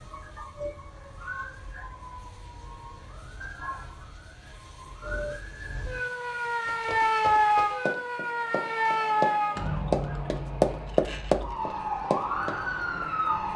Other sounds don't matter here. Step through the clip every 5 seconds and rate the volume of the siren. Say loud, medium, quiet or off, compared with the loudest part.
quiet, loud, medium.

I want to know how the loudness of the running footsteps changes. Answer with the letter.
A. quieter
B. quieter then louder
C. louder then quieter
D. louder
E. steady
D.